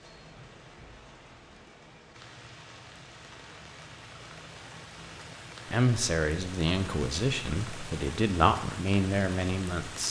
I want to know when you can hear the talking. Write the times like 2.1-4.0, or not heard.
5.7-10.0.